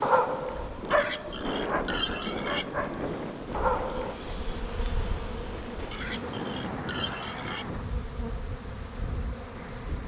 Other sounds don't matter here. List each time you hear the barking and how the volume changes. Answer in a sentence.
The barking can be heard from 0.0 to 4.2 s, getting quieter then louder.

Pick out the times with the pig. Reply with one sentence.
The pig can be heard from 0.9 to 2.7 s and from 5.9 to 7.7 s.